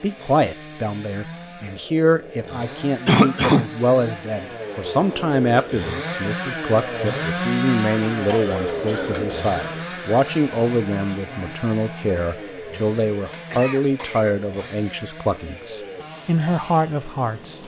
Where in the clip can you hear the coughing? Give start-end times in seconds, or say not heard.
3.0-3.6, 8.2-9.8, 13.3-14.8.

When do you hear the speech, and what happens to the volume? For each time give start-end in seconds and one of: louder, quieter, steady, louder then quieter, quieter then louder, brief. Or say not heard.
0.0-17.6 steady.